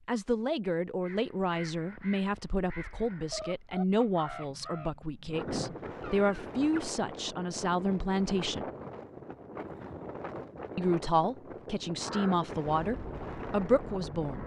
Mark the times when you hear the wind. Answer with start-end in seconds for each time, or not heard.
5.2-14.4.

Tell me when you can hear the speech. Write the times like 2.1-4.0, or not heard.
0.1-8.7, 10.8-14.4.